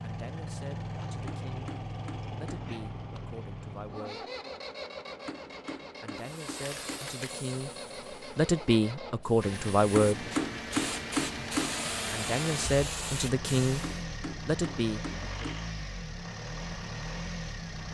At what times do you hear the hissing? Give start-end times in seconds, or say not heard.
6.2-14.0.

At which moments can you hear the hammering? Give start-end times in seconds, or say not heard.
1.2-2.7, 5.2-7.2, 9.9-11.8, 13.8-15.8.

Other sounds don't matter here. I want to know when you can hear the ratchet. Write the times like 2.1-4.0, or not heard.
not heard.